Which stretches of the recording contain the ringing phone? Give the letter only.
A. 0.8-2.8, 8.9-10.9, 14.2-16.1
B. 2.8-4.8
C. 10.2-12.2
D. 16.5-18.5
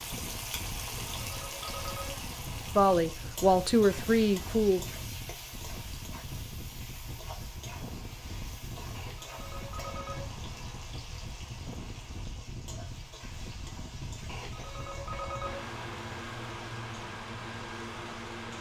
A.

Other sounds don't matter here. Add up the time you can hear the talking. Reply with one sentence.
You can hear the talking for 2 seconds altogether.